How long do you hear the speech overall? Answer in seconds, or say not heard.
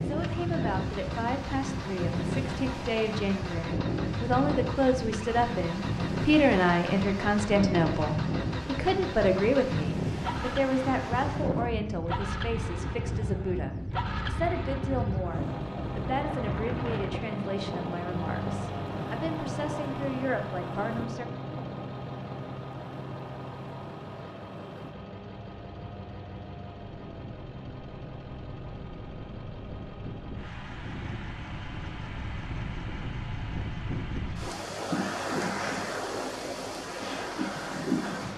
21 s.